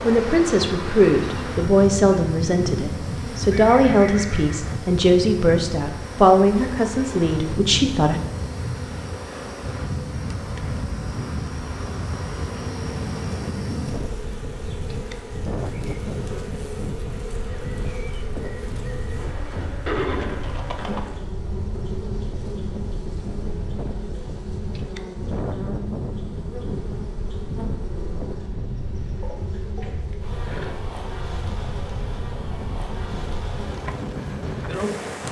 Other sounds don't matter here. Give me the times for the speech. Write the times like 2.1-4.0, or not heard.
0.1-8.2.